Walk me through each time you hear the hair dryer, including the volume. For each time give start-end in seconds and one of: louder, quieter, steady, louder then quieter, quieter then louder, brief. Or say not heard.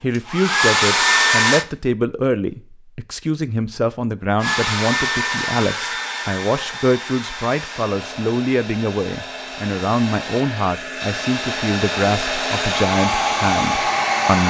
0.1-1.6 brief
4.4-14.4 quieter then louder.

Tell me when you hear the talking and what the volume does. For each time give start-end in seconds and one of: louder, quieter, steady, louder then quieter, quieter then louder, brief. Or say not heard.
0.0-14.4 steady.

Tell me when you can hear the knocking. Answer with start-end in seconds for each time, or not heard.
not heard.